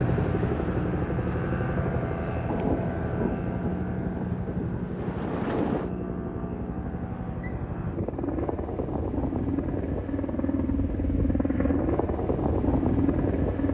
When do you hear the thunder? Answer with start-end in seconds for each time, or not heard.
2.5-5.9.